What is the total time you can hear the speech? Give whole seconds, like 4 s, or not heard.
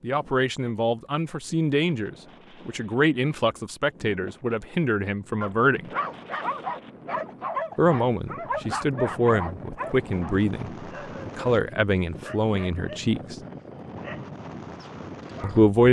12 s.